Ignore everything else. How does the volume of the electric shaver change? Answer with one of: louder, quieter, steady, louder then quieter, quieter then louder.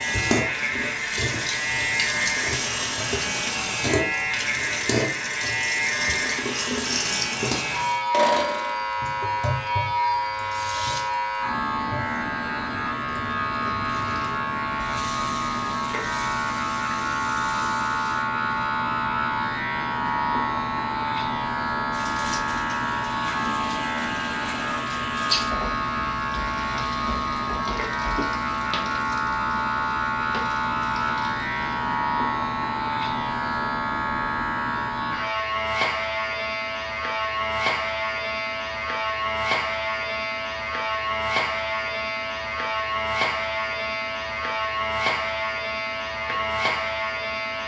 steady.